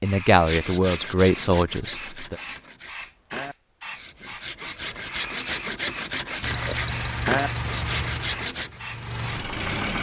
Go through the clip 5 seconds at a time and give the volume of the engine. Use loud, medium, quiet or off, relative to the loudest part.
off, loud.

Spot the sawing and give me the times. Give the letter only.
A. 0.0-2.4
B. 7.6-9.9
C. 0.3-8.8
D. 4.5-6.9
C.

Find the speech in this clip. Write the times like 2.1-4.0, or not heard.
0.0-2.4.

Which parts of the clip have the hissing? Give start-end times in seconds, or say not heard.
0.0-9.8.